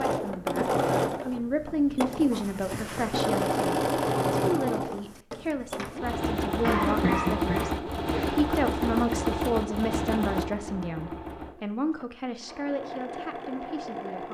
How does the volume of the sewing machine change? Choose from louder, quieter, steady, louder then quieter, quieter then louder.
quieter.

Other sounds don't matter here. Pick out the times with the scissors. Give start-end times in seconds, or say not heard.
not heard.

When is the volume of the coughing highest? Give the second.
7 s.